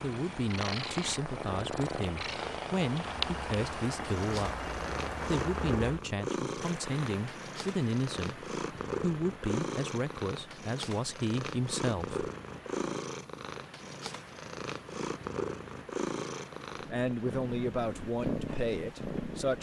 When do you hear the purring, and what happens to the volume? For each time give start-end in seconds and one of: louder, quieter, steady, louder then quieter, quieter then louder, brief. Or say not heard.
0.0-19.5 steady.